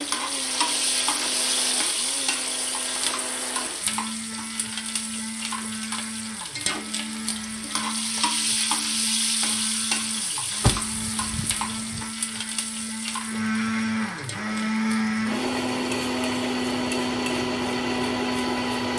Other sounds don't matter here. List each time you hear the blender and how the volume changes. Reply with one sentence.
You can hear the blender from 0.0 to 18.9 s, getting louder.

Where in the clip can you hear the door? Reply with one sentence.
The door can be heard from 10.6 to 12.0 s.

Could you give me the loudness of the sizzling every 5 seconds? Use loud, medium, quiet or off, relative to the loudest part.
loud, loud, medium, medium.